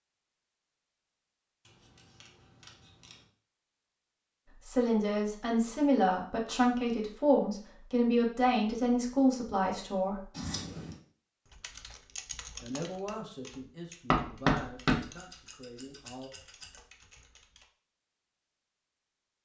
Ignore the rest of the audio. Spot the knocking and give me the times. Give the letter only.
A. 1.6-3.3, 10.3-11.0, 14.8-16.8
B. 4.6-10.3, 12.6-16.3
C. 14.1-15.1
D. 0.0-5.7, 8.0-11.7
C.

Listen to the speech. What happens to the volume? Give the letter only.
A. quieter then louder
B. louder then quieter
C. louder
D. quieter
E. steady
D.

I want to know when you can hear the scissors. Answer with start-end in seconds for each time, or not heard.
1.6-3.3, 10.3-11.0, 14.8-16.8.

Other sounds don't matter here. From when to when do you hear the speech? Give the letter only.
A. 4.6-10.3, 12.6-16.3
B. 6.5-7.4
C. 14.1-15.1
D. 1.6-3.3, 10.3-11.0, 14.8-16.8
A.